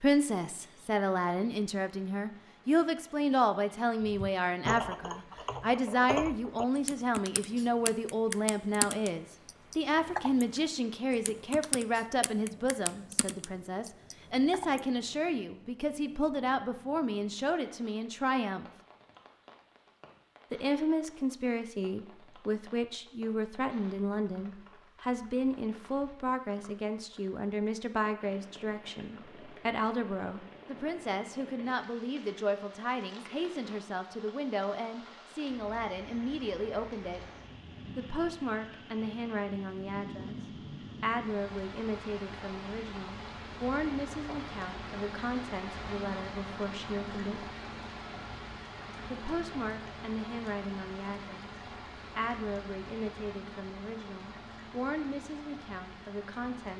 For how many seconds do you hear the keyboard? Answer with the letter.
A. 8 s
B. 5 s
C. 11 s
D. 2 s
C.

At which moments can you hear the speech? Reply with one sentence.
You can hear the speech from 0.0 to 18.7 s, from 20.5 to 37.2 s, from 38.0 to 40.4 s, from 41.0 to 47.5 s, from 49.1 to 51.5 s and from 52.1 to 56.7 s.